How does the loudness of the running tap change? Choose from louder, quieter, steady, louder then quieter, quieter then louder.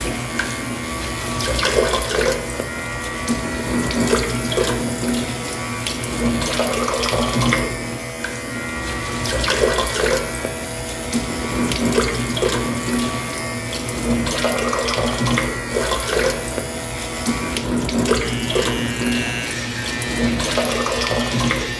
steady.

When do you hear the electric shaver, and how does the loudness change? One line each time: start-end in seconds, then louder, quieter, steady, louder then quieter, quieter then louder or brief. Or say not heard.
0.0-21.7 steady.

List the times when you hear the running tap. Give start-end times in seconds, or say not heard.
0.0-21.7.